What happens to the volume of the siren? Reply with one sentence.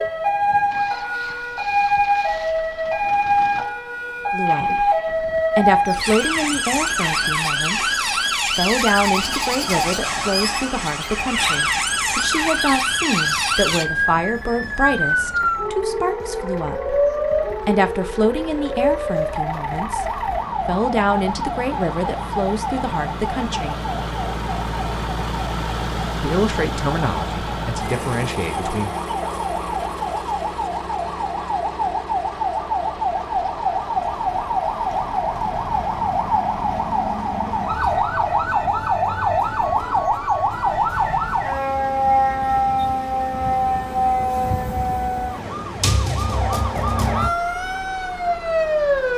The loudness of the siren goes down, then up.